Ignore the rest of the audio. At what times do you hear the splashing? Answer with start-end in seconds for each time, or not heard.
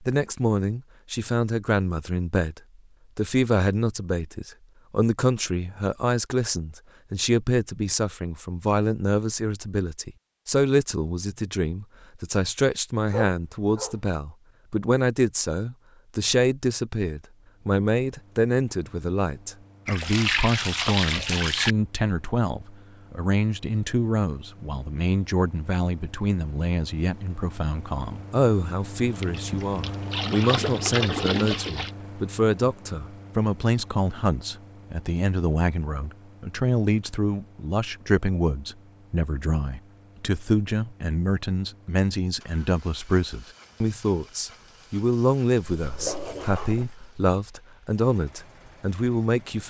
19.9-21.8, 29.2-31.9.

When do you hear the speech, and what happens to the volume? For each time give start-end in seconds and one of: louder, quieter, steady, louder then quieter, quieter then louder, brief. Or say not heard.
0.0-49.6 steady.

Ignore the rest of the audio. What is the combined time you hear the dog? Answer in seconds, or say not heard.
2 s.